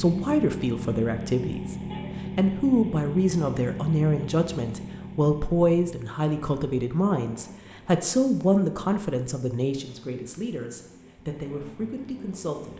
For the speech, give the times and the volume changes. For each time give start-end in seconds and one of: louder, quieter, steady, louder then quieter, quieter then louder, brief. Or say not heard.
0.0-1.8 brief
2.4-12.7 quieter.